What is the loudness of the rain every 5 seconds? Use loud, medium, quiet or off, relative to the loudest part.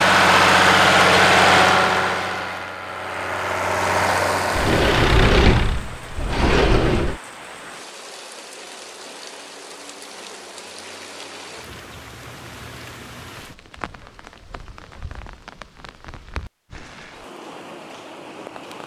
off, loud, loud, loud.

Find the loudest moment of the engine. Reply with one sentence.
The loudest moment of the engine is at 1 second.